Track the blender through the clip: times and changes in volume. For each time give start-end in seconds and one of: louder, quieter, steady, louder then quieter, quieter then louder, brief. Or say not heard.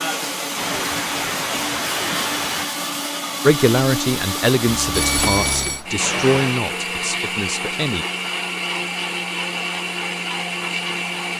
0.0-11.3 steady.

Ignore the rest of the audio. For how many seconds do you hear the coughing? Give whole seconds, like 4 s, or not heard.
3 s.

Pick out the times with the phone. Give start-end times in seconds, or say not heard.
4.7-5.8.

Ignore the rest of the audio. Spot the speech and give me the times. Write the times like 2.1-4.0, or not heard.
3.5-8.1.